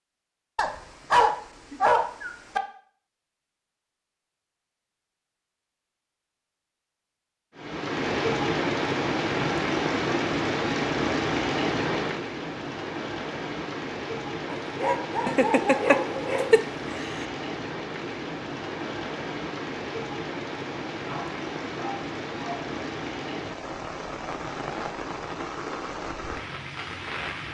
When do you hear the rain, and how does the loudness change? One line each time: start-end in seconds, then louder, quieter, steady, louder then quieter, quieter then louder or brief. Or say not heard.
7.5-27.5 quieter.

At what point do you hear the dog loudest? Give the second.
1 s.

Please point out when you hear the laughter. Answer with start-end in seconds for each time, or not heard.
15.2-17.2.